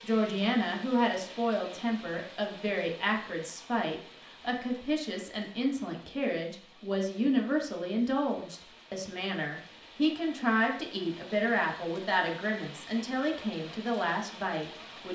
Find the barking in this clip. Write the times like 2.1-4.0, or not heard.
not heard.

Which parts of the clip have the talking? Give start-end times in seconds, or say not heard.
0.0-15.0.